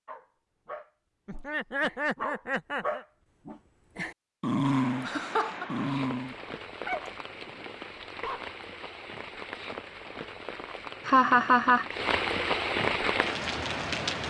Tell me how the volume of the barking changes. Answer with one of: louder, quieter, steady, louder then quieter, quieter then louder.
louder then quieter.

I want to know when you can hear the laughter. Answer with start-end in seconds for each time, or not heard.
1.2-3.0, 5.0-5.7, 11.1-11.8.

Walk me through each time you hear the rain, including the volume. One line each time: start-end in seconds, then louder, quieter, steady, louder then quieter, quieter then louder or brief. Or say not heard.
4.6-14.2 louder.